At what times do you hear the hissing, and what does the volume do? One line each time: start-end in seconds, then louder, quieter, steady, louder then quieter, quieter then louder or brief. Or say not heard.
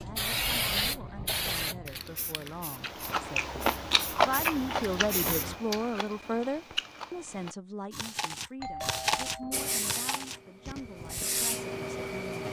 0.0-5.6 quieter then louder
9.5-12.4 brief.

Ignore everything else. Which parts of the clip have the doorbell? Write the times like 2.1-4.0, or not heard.
8.6-9.7.